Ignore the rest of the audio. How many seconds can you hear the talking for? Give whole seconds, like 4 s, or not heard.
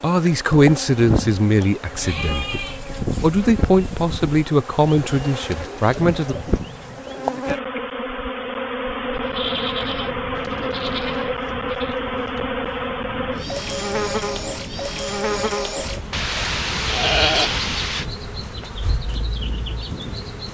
6 s.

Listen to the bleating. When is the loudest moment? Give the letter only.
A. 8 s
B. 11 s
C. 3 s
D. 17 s
D.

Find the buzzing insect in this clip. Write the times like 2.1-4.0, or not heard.
0.0-20.4.